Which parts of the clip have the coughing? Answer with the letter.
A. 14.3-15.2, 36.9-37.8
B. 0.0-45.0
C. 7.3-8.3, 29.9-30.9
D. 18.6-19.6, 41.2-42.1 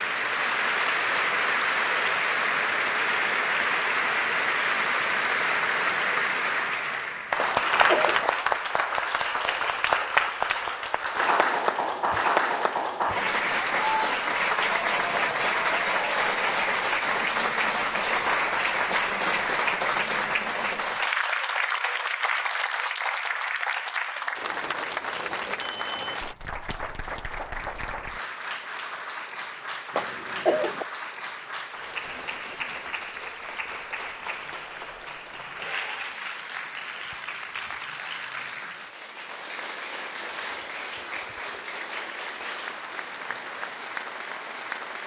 C.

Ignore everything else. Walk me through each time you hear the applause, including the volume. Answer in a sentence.
The applause can be heard from 0.0 to 45.0 s, getting quieter.